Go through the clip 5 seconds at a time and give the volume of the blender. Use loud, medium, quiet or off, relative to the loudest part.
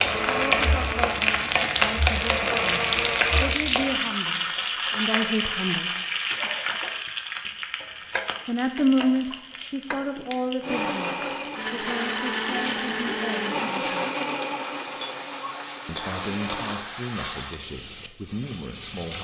loud, off, loud, medium.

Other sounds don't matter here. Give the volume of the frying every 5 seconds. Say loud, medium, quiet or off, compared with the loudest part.
loud, medium, quiet, medium.